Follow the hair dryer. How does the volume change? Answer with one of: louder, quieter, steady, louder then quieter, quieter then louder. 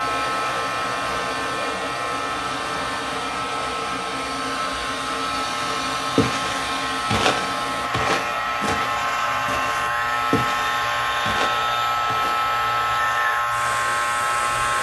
steady.